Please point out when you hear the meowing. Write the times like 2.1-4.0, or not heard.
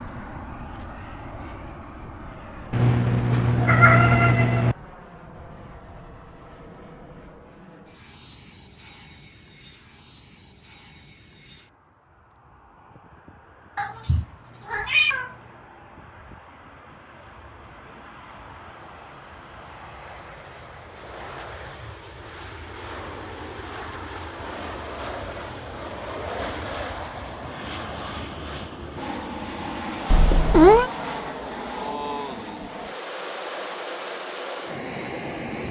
2.7-4.8, 13.8-15.3, 30.1-30.9.